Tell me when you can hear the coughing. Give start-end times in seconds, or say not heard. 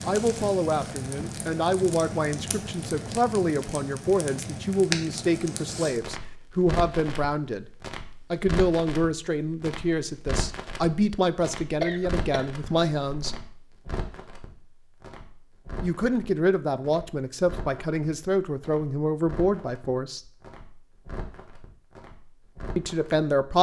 11.8-13.4.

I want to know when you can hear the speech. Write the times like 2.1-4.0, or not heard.
0.0-7.7, 8.3-13.3, 15.8-20.3, 22.8-23.5.